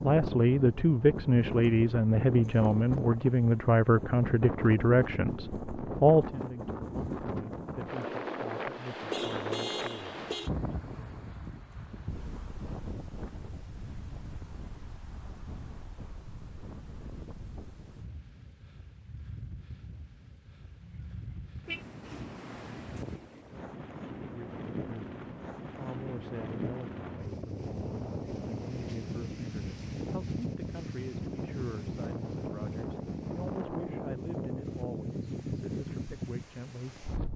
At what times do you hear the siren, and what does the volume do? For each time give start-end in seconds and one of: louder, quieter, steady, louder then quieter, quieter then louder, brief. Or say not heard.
not heard.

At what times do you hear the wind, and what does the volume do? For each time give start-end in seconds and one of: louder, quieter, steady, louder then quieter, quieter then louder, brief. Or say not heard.
0.0-37.3 quieter then louder.